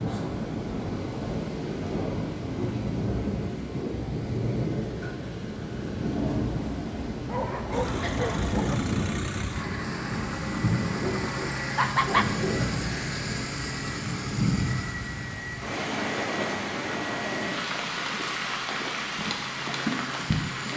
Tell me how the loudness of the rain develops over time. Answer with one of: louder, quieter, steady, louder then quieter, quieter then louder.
steady.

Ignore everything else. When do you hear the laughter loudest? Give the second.
12 s.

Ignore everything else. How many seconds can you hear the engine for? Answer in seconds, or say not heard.
13 s.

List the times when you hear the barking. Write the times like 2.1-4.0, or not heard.
7.2-8.8, 10.9-12.7.